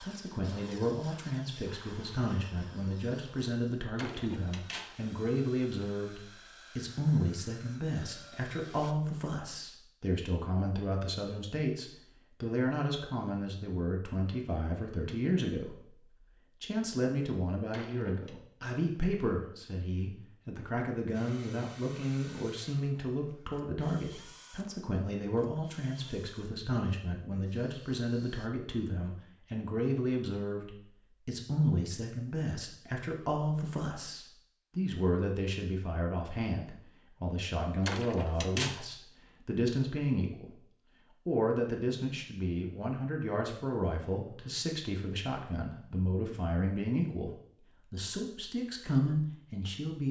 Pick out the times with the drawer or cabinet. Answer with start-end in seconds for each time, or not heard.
4.0-5.0, 17.7-18.4, 37.9-38.9.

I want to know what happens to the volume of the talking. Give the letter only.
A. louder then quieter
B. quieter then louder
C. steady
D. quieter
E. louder
C.